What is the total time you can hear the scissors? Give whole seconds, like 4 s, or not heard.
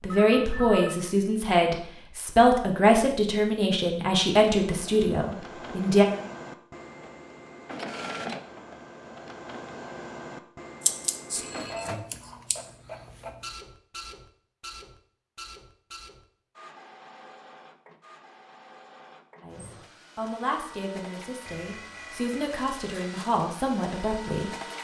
2 s.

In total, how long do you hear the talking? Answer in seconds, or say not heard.
11 s.